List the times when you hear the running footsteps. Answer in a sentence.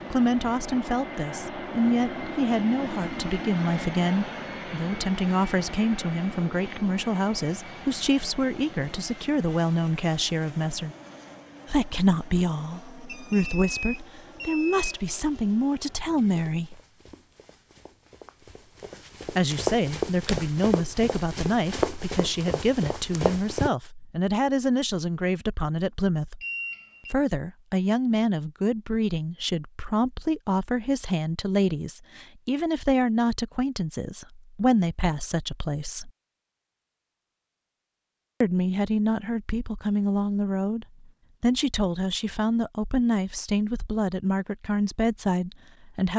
The running footsteps can be heard from 16.2 to 23.7 s.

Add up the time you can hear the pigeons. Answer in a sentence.
The pigeons can't be heard in this clip.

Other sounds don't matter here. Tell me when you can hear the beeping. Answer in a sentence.
The beeping can be heard from 13.1 to 14.9 s and from 26.4 to 27.1 s.